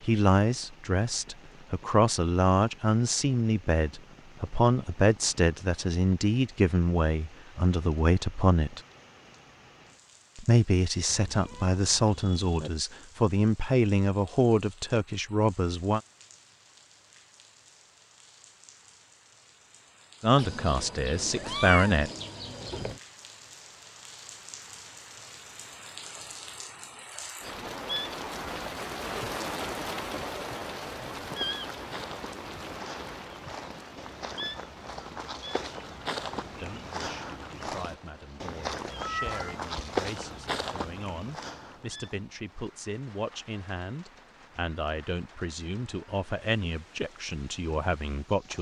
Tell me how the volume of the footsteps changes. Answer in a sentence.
The volume of the footsteps goes up.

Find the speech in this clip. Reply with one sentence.
The speech can be heard from 0.1 to 8.8 s, from 10.3 to 16.0 s, from 20.2 to 22.1 s and from 36.5 to 48.5 s.